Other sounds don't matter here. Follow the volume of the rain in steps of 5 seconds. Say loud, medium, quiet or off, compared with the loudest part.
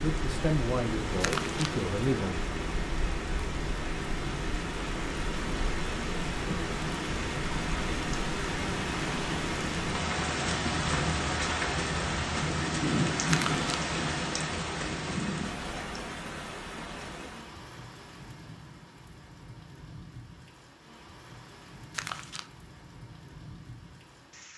medium, loud, loud, medium, quiet.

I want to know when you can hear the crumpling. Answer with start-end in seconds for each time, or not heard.
1.2-1.8, 13.2-13.7, 21.9-22.5.